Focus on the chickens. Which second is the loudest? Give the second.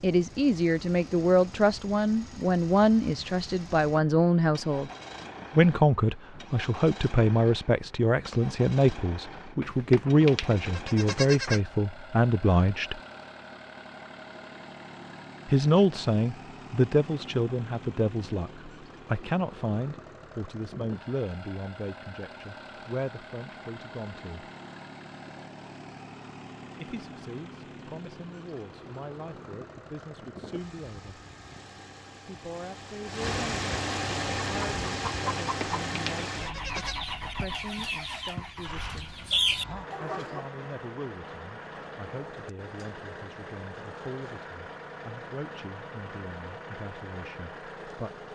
39 s.